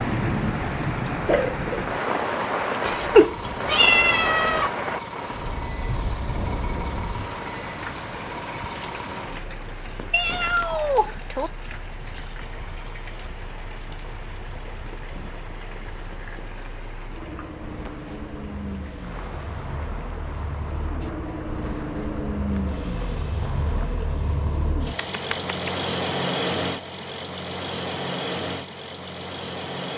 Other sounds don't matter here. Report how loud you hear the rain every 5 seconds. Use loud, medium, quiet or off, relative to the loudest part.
loud, medium, quiet, quiet, quiet, off.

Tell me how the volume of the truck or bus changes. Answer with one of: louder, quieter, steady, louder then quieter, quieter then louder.
quieter then louder.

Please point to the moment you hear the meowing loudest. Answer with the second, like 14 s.
3 s.